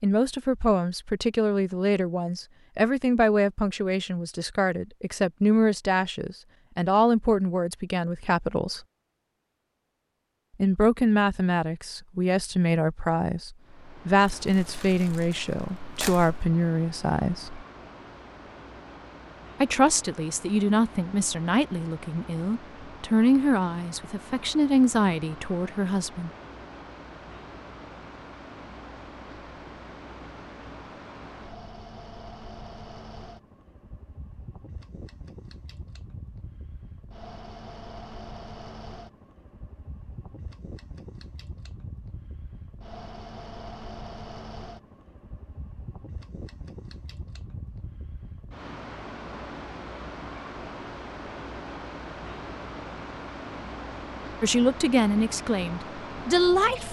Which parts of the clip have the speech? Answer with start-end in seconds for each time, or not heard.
0.0-8.8, 10.6-17.6, 19.6-26.3, 54.4-56.8.